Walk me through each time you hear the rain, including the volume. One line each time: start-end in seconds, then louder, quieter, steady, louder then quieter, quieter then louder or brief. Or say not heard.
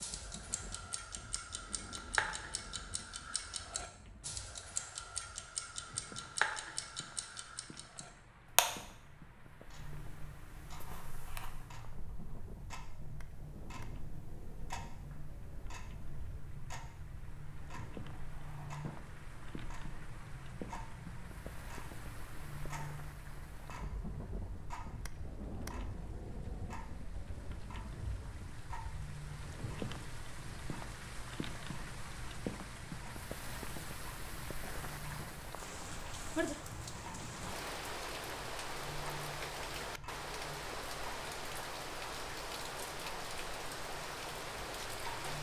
0.0-45.3 louder.